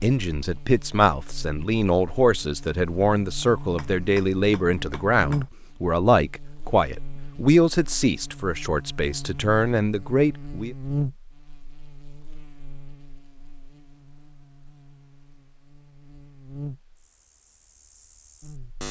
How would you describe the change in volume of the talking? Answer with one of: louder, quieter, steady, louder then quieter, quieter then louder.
steady.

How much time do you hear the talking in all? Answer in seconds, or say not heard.
11 s.